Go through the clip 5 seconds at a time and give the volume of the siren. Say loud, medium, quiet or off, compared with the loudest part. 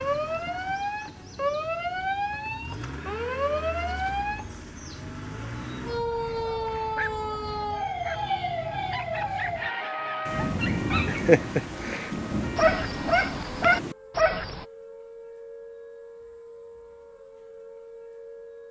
loud, loud, medium, quiet.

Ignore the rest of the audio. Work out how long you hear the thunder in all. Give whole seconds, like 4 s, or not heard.
4 s.